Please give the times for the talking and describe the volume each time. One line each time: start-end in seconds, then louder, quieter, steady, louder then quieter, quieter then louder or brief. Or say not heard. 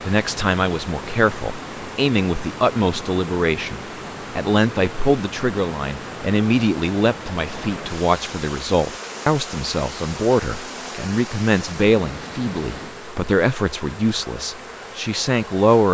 0.1-15.8 steady.